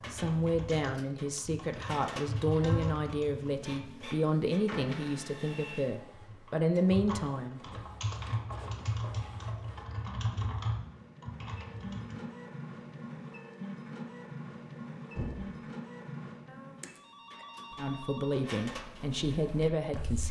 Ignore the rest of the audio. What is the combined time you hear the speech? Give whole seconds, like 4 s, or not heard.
10 s.